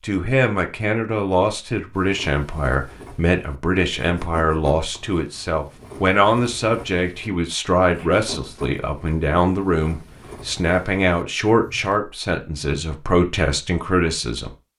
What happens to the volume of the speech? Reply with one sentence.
The volume of the speech stays about the same.